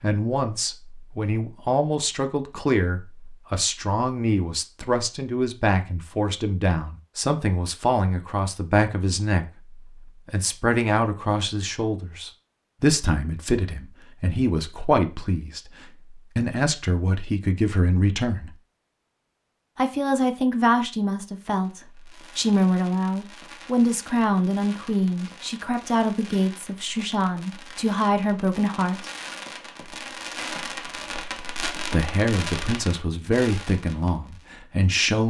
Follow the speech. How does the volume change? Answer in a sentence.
The loudness of the speech stays about the same.